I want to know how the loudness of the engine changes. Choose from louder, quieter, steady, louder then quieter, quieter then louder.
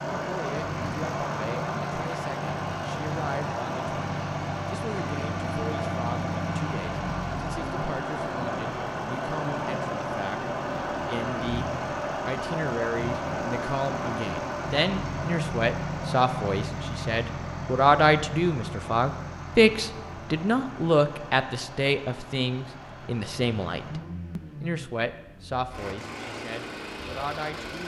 quieter.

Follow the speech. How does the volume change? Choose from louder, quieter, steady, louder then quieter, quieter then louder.
louder then quieter.